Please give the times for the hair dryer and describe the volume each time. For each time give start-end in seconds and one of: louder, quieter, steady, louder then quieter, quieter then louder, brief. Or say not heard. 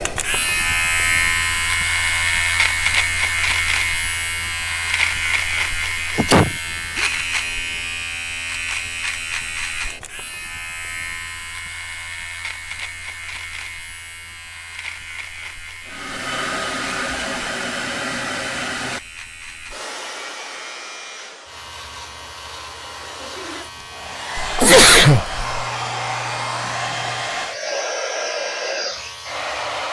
15.8-29.8 quieter then louder.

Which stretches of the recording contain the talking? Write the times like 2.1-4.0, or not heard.
not heard.